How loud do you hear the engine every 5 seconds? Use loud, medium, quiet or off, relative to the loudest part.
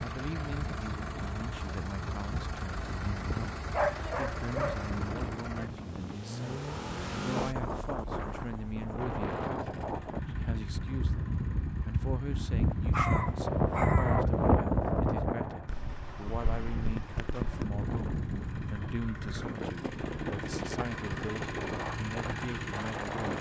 loud, loud, medium, medium, loud.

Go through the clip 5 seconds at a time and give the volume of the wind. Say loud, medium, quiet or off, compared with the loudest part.
quiet, medium, loud, medium, medium.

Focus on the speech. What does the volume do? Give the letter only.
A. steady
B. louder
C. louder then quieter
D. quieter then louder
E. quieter
A.